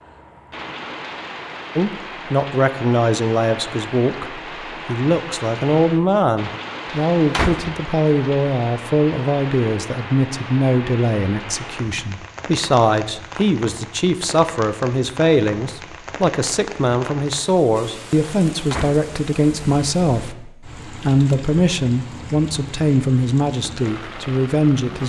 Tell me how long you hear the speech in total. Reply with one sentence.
You can hear the speech for 23 seconds altogether.